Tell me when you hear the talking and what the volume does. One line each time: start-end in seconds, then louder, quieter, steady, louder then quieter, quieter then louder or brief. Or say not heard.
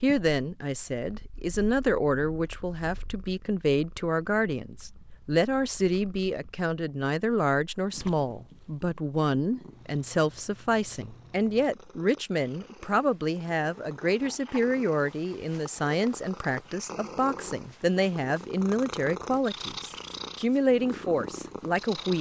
0.0-22.1 steady.